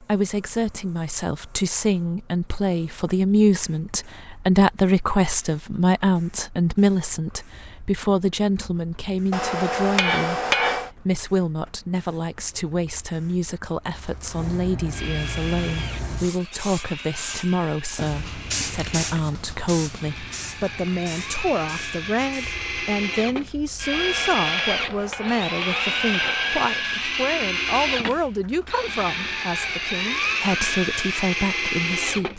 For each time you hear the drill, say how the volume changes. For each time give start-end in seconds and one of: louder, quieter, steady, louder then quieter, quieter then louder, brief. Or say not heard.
14.9-32.3 louder.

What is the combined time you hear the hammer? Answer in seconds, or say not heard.
4 s.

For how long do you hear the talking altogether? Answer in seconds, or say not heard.
32 s.